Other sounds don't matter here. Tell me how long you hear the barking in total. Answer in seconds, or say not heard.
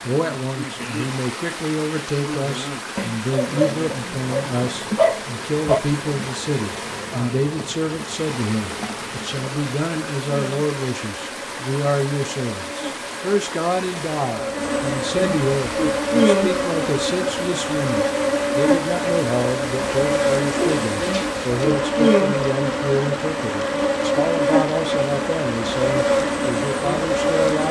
4 s.